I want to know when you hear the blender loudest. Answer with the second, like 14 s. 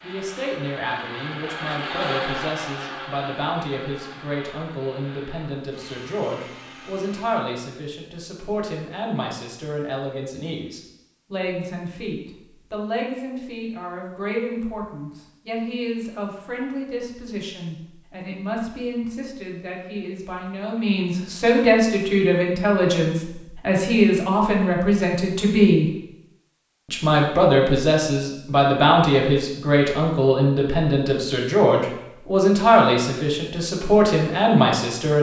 2 s.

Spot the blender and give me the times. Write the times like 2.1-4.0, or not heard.
0.0-7.5.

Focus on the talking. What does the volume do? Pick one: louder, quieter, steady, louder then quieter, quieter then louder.
louder.